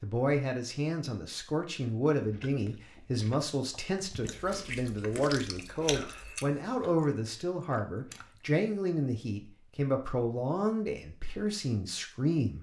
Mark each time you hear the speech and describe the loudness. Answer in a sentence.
The speech can be heard from 0.0 to 12.5 s, at a steady volume.